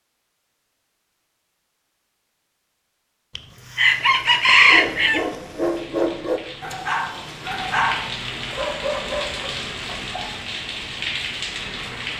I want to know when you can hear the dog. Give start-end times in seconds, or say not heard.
4.6-10.3.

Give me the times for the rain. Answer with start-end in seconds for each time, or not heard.
3.5-12.1.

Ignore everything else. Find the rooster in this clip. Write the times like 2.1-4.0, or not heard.
3.4-5.2.